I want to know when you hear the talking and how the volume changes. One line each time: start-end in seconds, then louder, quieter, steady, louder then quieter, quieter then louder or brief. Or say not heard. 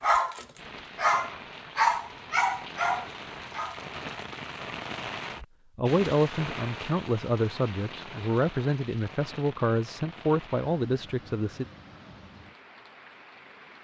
5.8-11.7 steady.